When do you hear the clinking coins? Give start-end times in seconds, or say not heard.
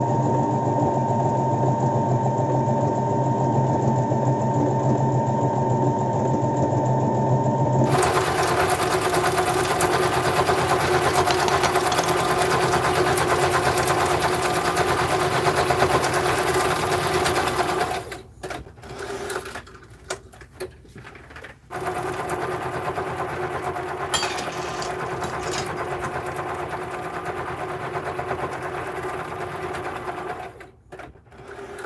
11.2-12.1, 24.1-25.9.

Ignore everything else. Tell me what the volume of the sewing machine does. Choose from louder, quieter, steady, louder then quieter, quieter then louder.
quieter.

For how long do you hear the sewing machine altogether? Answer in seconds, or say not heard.
32 s.